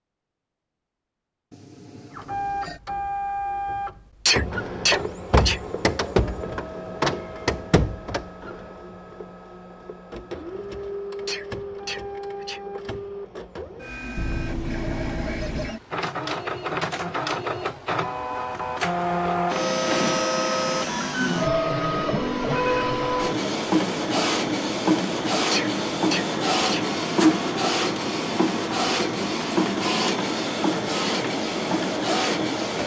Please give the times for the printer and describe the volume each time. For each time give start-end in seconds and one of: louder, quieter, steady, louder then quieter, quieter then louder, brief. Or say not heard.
2.1-32.8 quieter then louder.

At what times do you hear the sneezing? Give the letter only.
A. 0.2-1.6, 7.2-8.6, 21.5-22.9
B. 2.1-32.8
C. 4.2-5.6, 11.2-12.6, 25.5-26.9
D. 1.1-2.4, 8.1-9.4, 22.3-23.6
C.